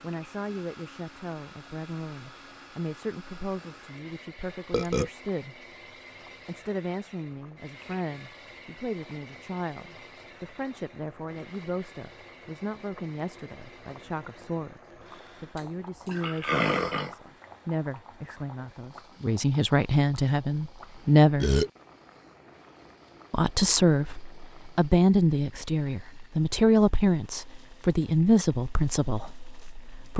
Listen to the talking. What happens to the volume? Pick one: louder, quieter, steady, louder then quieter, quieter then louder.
louder.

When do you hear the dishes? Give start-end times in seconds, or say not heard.
not heard.